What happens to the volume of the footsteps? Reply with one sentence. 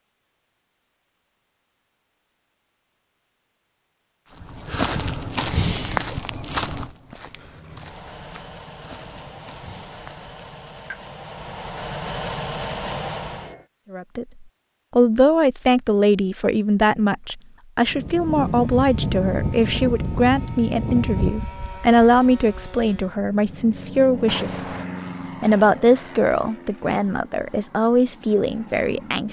The volume of the footsteps goes down.